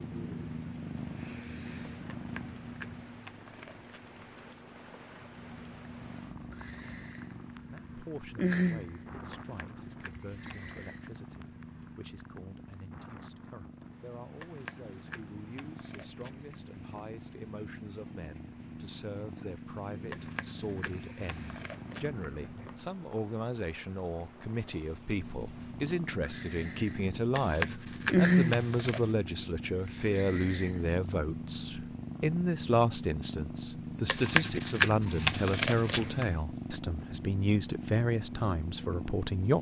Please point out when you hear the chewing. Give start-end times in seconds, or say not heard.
2.1-4.2, 9.3-10.9, 14.4-17.1, 20.1-22.8, 27.3-29.1, 34.0-36.4.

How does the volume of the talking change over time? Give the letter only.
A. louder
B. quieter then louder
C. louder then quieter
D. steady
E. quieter
A.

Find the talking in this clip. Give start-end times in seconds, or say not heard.
7.7-39.5.